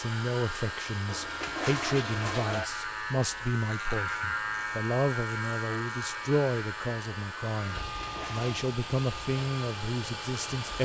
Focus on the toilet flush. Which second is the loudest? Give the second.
2 s.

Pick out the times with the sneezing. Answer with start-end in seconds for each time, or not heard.
not heard.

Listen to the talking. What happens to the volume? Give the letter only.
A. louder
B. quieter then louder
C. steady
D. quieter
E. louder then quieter
C.